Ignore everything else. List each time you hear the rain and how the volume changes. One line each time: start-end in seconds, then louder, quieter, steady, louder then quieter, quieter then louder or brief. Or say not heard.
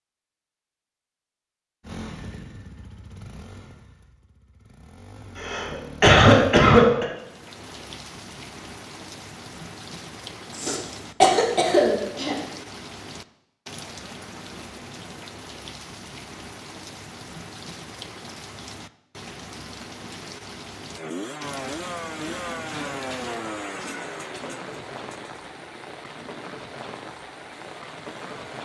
7.1-28.5 steady.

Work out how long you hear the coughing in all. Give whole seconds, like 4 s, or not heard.
6 s.